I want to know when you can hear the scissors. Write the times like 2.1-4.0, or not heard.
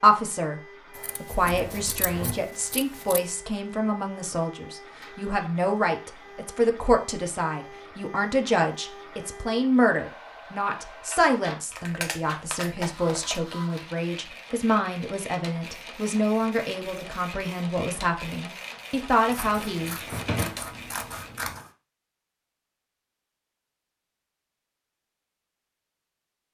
0.9-3.2, 11.7-13.4, 19.3-21.7.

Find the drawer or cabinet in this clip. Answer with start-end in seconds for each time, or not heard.
1.4-2.4, 20.1-20.6.